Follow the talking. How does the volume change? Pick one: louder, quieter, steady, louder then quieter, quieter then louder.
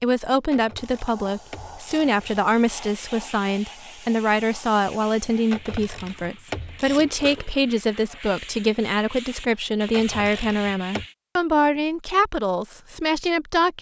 steady.